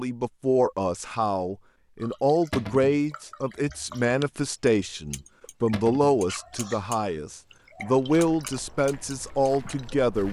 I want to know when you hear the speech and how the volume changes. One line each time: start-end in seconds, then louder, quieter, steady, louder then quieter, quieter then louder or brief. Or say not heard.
0.0-10.2 steady.